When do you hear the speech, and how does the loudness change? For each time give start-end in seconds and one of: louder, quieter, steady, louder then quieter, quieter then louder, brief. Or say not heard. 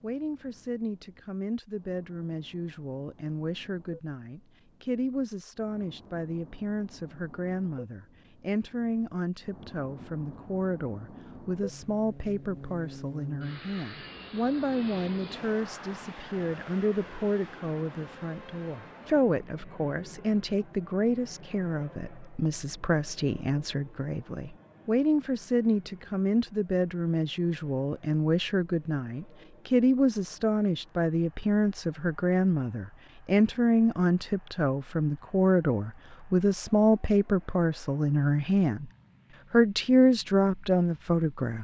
0.0-38.9 louder
39.5-41.6 brief.